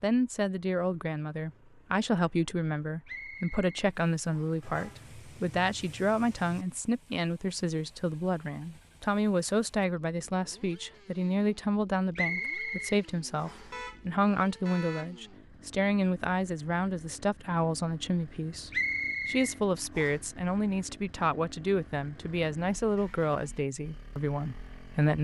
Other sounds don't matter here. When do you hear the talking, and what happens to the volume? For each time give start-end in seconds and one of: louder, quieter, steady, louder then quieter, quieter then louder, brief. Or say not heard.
0.0-25.1 steady.